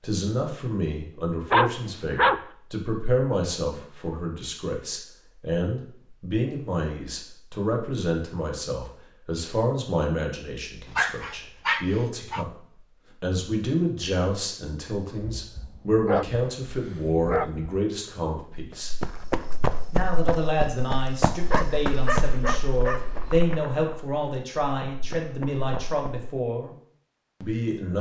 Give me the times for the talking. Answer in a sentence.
You can hear the talking from 0.0 to 12.5 s, from 13.2 to 18.9 s, from 19.9 to 26.8 s and from 27.4 to 27.9 s.